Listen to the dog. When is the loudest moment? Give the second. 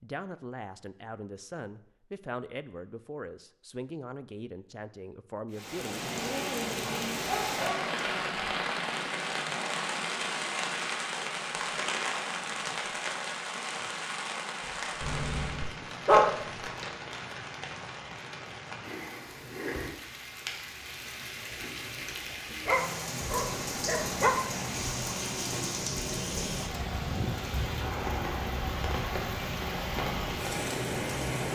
16 s.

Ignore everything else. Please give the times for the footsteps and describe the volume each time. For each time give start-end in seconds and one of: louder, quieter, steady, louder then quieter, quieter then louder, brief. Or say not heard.
not heard.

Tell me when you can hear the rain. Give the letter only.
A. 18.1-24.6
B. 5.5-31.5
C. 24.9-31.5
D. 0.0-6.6
B.